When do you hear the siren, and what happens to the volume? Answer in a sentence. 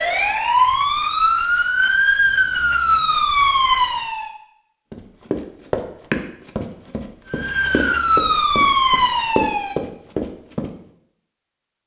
You can hear the siren from 0.0 to 4.3 s, at a steady volume; and briefly from 7.3 to 9.8 s.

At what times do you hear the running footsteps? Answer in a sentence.
You can hear the running footsteps from 4.9 to 10.7 s.